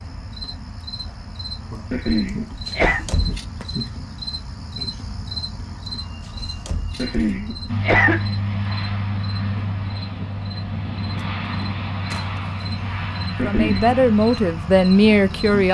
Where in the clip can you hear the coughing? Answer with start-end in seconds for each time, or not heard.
1.9-3.0, 7.0-8.2, 13.3-13.9.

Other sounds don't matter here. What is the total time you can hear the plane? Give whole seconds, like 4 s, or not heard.
8 s.